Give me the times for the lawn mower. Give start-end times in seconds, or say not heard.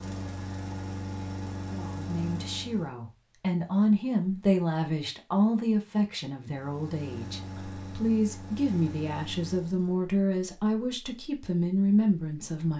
0.0-2.9, 6.4-10.1.